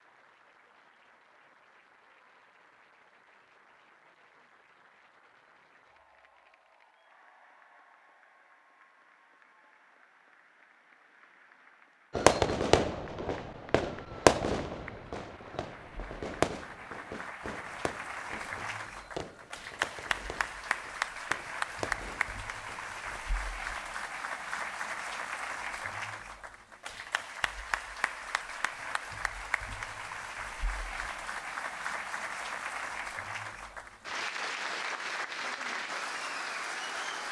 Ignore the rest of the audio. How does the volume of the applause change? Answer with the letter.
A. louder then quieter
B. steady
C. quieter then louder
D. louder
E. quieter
D.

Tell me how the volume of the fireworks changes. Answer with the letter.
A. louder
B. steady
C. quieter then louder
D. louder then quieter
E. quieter
E.